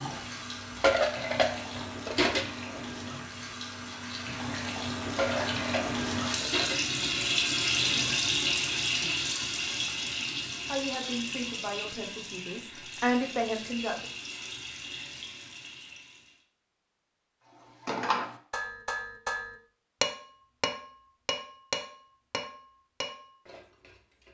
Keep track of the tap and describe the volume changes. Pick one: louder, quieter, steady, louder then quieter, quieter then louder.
louder then quieter.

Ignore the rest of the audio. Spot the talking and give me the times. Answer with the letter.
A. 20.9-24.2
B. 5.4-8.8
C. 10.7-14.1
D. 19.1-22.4
C.